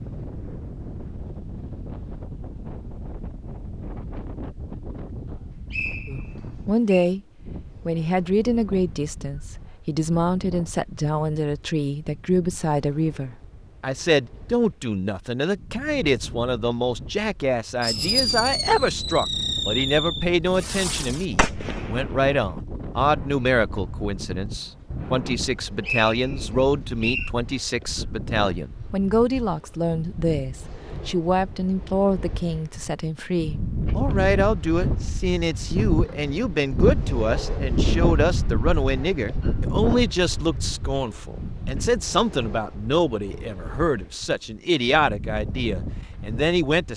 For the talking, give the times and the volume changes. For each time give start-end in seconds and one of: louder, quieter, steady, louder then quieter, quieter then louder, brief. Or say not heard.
6.0-7.2 brief
7.8-46.9 steady.